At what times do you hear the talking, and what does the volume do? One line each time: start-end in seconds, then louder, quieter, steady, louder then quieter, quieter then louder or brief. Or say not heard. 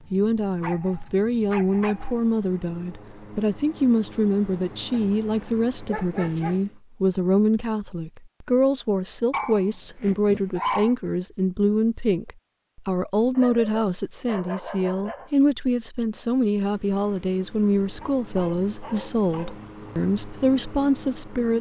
0.1-21.5 steady.